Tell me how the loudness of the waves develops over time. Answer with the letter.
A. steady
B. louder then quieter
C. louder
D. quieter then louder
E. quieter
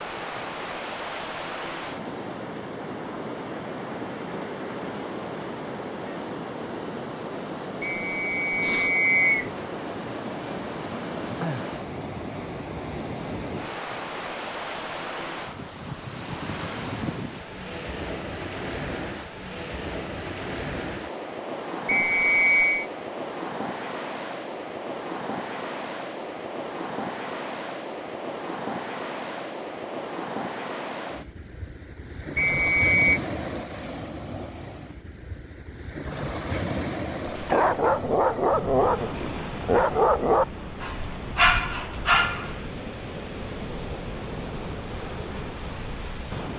A.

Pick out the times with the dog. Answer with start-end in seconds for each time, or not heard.
37.2-42.6.